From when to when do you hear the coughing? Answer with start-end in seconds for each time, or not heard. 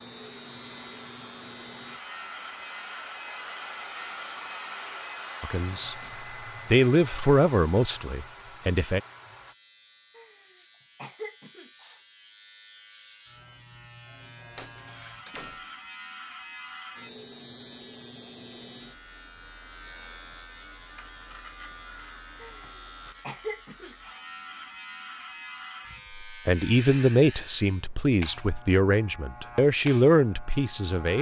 10.2-12.0, 22.4-24.2.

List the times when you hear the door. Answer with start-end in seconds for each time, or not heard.
14.6-15.7.